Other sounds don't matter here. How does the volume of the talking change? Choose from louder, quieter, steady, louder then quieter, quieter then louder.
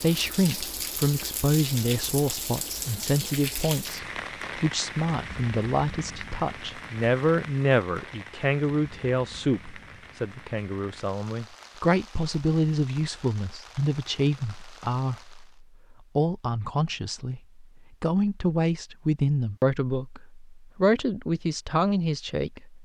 steady.